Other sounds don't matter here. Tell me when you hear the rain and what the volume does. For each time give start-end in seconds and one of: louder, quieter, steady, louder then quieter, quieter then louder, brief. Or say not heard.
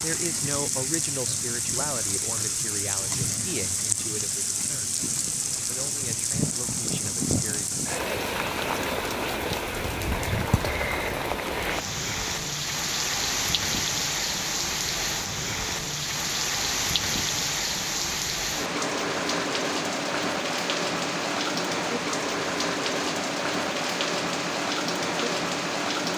0.0-26.1 steady.